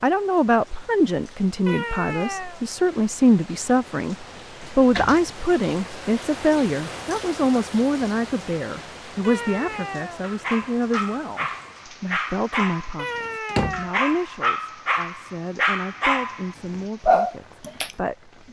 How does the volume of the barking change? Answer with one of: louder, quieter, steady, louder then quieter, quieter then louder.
louder.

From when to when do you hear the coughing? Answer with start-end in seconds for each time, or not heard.
not heard.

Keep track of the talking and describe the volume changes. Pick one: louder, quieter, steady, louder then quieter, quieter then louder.
quieter.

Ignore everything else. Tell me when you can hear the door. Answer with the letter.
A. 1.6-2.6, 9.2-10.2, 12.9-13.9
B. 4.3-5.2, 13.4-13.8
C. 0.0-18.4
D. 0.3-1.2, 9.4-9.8
B.